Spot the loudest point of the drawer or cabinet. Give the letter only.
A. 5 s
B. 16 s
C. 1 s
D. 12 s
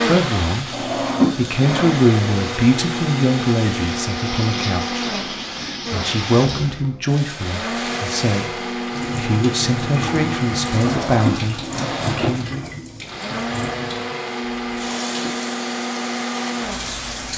C.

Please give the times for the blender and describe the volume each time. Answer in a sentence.
The blender can be heard from 0.0 to 17.1 s, at a steady volume.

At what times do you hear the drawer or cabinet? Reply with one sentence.
The drawer or cabinet can be heard from 0.7 to 1.9 s and from 10.8 to 12.7 s.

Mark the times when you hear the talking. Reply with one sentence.
The talking can be heard from 0.0 to 12.7 s.